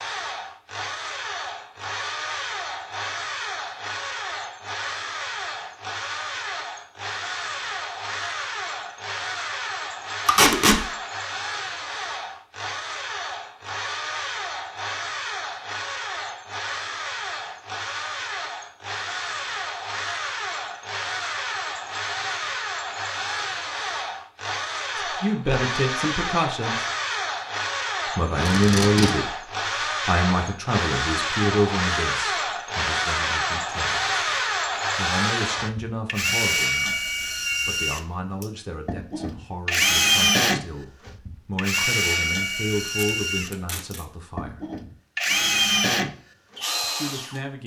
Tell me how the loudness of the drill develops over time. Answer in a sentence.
The loudness of the drill goes up.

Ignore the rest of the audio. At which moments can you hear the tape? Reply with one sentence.
The tape can be heard from 10.2 to 10.8 s, from 28.4 to 29.1 s and from 42.9 to 44.0 s.